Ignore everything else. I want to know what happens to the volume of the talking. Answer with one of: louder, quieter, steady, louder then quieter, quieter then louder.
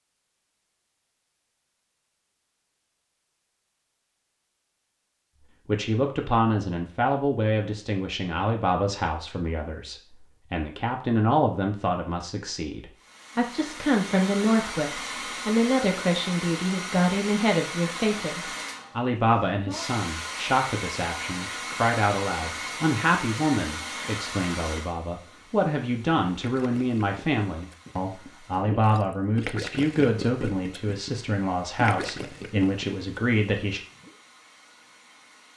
steady.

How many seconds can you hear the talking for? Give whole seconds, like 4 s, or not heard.
28 s.